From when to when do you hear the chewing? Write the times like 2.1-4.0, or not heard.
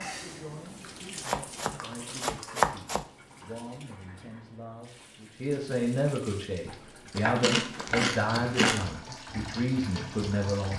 0.7-2.2, 7.2-8.8.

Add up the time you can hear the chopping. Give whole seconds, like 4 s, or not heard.
4 s.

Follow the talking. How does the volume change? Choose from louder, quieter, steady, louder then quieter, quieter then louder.
louder.